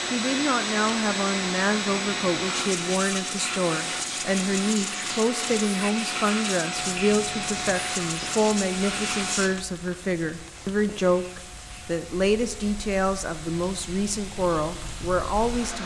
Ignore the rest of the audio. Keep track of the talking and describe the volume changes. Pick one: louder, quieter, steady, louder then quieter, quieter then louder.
steady.